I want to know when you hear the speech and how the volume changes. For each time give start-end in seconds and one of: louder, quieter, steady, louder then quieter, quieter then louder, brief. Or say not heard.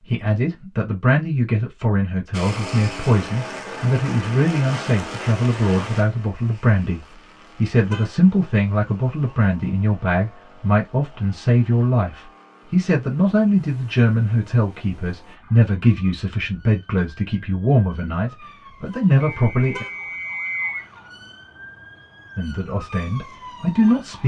0.0-19.9 steady
22.4-24.2 brief.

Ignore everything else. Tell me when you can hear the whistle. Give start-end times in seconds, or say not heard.
19.2-20.9.